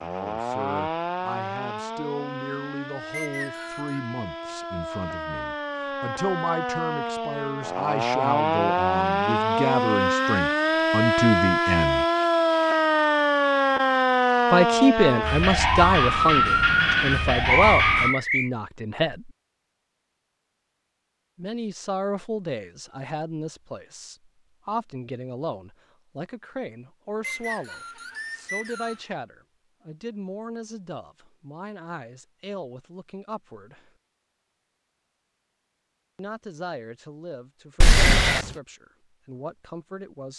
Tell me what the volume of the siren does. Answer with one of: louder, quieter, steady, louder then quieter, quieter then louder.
louder.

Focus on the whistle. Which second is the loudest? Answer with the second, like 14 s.
18 s.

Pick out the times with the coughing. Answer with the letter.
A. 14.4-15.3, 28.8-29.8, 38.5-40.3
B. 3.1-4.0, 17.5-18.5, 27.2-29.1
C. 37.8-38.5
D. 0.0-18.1
C.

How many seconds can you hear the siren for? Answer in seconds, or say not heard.
18 s.